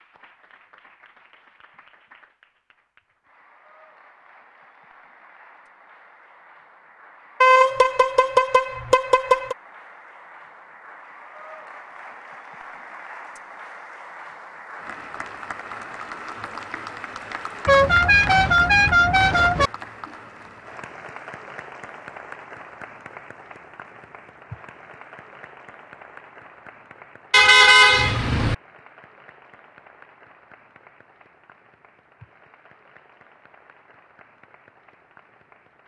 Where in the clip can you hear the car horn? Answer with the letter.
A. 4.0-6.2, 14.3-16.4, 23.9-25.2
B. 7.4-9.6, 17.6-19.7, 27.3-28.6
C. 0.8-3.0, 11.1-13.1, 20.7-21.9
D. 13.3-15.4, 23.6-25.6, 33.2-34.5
B.